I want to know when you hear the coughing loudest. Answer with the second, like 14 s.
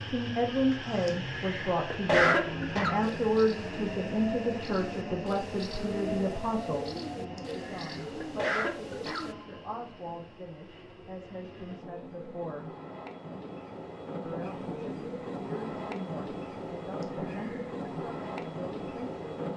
2 s.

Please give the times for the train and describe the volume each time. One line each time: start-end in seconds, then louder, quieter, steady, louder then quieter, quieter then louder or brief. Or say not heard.
0.0-19.5 quieter then louder.